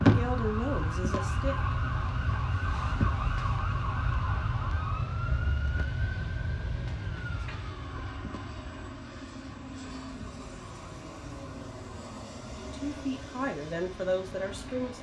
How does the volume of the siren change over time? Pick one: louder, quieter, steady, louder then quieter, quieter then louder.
quieter.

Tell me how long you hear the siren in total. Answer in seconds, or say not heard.
15 s.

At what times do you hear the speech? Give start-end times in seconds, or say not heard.
0.0-1.8, 12.6-14.9.